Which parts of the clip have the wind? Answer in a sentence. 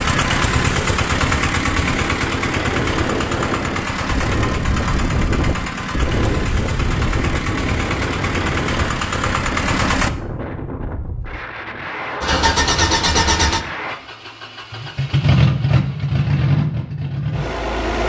You can hear the wind from 0.2 to 13.9 s.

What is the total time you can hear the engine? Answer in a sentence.
You can hear the engine for 16 seconds altogether.